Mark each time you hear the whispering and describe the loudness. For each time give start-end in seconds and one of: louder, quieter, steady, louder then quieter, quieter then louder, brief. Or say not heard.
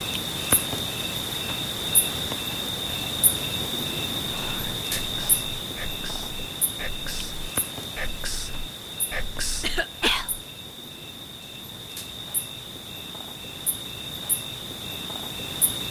4.2-10.4 louder.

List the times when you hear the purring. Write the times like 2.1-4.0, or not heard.
not heard.